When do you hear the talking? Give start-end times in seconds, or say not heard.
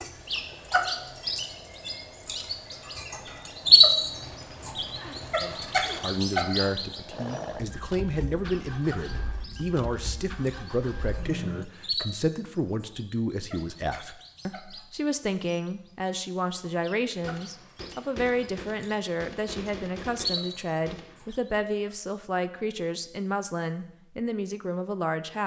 5.4-25.4.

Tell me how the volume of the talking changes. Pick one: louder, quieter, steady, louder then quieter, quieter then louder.
steady.